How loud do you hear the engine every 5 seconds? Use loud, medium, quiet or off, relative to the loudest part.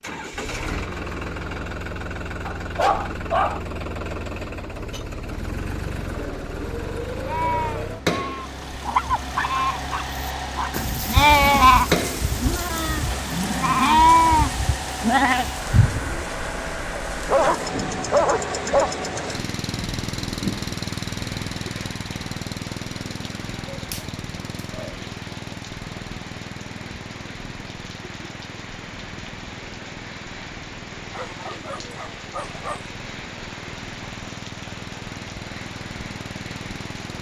loud, loud, loud, loud, loud, medium, medium, medium.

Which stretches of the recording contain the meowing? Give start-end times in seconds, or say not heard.
not heard.